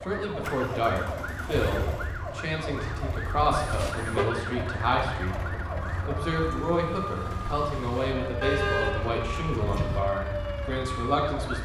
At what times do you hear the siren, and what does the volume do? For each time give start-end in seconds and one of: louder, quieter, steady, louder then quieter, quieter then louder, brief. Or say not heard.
0.0-11.5 steady.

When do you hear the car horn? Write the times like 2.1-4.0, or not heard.
3.5-4.2, 8.4-10.0.